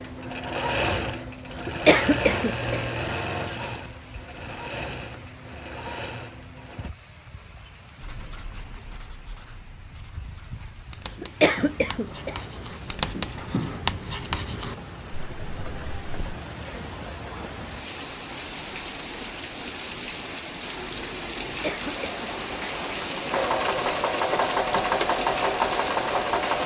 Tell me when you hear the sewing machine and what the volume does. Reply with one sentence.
The sewing machine can be heard from 0.0 to 6.9 s, getting quieter; and from 20.7 to 26.6 s, getting louder.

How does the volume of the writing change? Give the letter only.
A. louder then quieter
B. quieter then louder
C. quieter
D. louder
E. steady
D.